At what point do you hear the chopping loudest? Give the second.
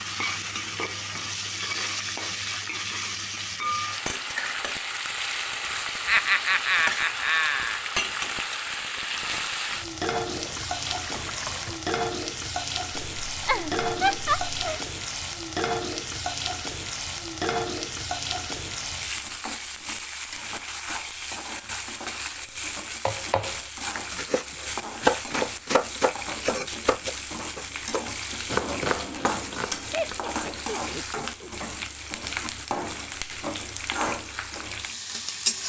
25 s.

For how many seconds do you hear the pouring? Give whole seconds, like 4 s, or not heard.
2 s.